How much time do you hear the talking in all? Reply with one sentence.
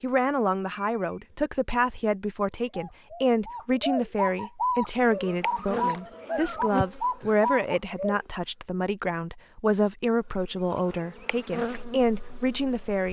You can hear the talking for 13 seconds altogether.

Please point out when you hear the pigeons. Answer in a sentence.
You can hear the pigeons from 2.6 to 8.2 s.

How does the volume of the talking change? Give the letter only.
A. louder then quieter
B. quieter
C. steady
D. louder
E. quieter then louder
C.